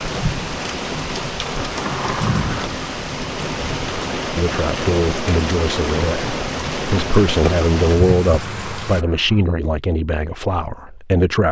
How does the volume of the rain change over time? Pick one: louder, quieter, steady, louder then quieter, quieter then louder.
steady.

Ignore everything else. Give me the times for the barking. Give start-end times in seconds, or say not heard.
not heard.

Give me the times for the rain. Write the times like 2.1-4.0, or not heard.
0.0-9.1.